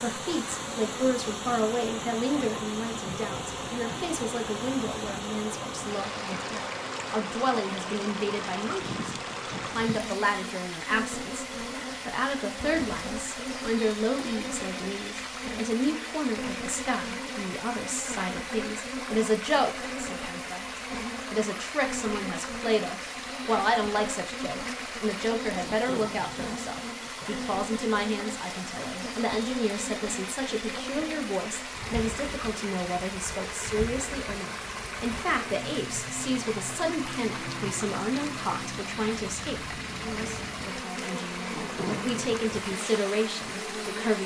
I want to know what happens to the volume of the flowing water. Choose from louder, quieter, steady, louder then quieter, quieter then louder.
steady.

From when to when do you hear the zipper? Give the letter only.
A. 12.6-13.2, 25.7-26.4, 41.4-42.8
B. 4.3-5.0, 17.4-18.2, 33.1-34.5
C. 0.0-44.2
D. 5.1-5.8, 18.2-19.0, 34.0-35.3
A.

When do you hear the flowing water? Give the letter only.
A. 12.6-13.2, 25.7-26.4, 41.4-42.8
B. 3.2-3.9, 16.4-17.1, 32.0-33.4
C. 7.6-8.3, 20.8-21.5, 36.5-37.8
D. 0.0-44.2
D.